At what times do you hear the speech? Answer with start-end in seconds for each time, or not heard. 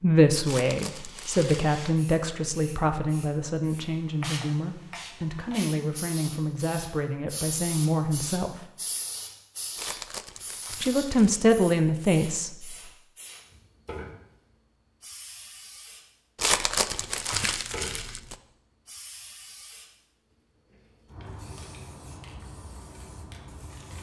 0.0-8.7, 10.8-12.8.